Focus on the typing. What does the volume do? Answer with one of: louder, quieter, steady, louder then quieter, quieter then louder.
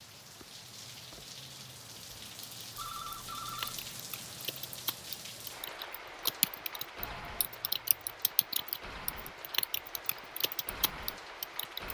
louder then quieter.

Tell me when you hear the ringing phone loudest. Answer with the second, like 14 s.
3 s.